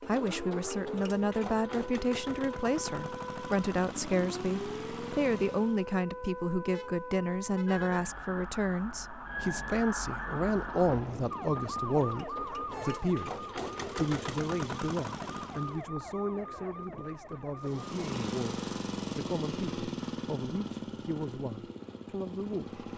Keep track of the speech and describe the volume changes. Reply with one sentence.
The loudness of the speech goes down.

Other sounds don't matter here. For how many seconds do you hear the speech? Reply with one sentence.
You can hear the speech for 23 seconds altogether.